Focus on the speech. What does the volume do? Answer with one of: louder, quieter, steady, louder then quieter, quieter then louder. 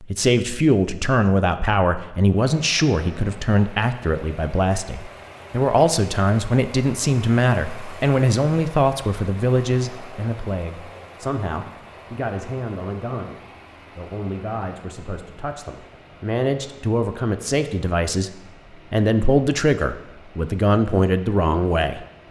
quieter then louder.